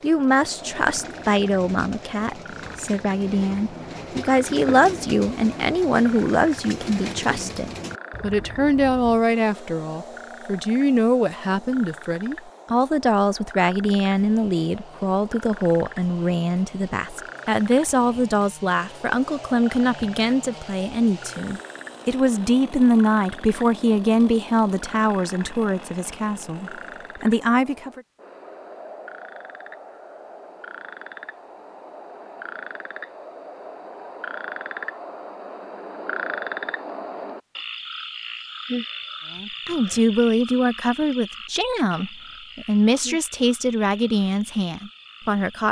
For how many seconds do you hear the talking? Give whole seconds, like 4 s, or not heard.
34 s.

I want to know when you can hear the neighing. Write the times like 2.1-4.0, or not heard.
not heard.